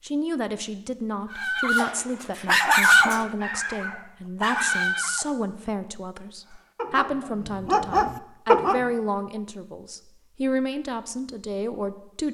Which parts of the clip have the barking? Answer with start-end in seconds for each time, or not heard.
1.3-5.3, 6.5-9.0.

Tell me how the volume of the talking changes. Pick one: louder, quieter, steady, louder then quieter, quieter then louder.
steady.